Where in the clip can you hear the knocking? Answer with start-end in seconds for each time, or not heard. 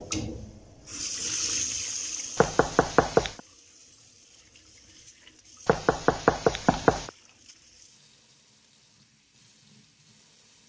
2.4-3.4, 5.7-7.1.